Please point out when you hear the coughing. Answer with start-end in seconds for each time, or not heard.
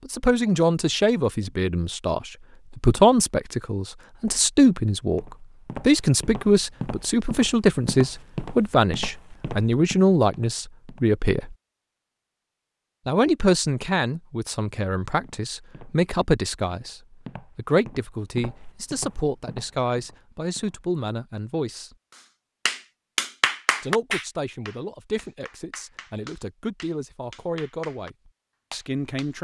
not heard.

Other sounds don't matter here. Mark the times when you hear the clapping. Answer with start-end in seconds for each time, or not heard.
22.6-28.1, 28.7-29.3.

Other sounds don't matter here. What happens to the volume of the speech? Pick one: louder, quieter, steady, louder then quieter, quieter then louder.
quieter.